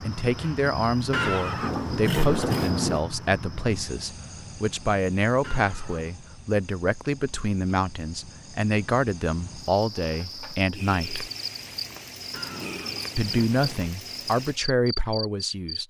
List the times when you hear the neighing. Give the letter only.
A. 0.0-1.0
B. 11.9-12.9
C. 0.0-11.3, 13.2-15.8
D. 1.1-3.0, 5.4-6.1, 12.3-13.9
D.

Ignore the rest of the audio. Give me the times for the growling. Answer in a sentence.
You can hear the growling from 11.9 to 12.9 s.